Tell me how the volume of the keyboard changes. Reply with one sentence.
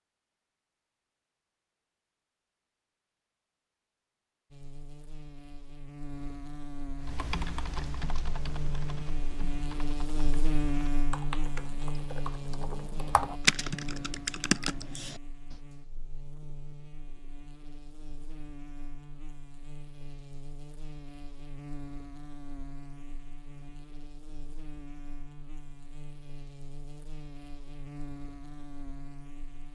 The volume of the keyboard goes down, then up.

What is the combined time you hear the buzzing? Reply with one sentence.
You can hear the buzzing for 25 seconds altogether.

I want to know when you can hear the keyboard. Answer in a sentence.
You can hear the keyboard from 7.0 to 15.6 s.